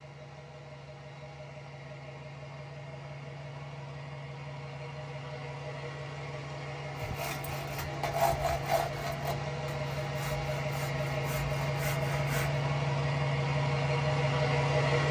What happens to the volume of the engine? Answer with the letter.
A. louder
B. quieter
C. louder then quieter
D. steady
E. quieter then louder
A.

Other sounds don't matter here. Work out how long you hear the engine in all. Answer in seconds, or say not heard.
15 s.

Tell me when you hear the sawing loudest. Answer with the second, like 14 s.
8 s.